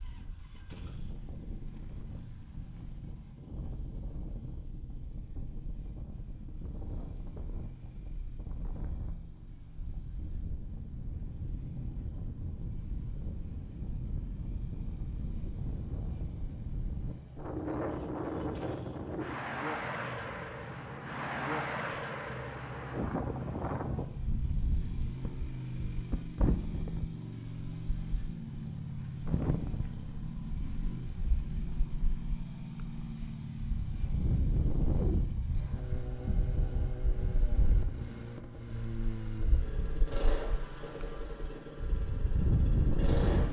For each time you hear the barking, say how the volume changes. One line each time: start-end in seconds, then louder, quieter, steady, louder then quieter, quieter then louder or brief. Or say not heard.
not heard.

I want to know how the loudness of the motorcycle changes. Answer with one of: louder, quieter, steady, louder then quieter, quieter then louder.
louder.